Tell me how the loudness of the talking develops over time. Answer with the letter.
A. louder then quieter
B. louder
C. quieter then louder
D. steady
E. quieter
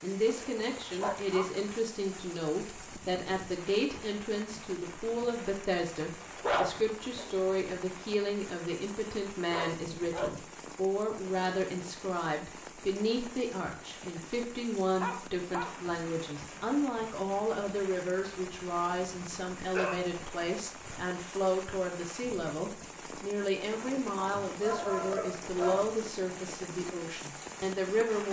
D.